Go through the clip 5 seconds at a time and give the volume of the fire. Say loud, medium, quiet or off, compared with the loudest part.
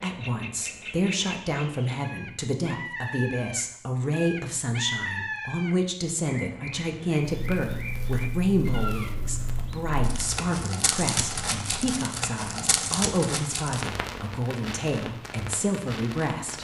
off, loud, loud, medium.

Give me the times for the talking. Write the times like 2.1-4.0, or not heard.
0.0-16.5.